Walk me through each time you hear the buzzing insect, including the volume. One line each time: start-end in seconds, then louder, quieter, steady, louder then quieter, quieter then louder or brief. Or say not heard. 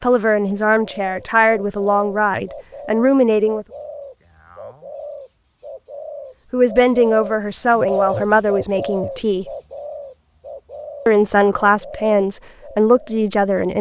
not heard.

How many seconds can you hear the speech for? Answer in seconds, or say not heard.
9 s.